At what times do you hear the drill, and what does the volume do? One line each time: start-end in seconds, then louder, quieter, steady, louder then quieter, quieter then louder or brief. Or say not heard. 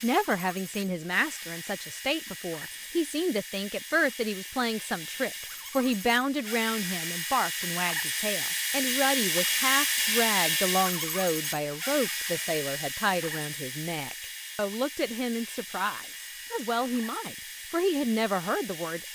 0.0-19.1 louder then quieter.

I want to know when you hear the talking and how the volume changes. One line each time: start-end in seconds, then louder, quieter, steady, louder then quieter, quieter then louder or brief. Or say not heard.
0.0-19.1 steady.